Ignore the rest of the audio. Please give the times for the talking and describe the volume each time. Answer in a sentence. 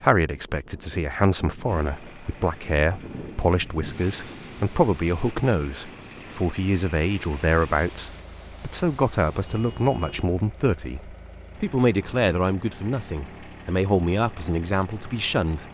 The talking can be heard from 0.0 to 15.6 s, at a steady volume.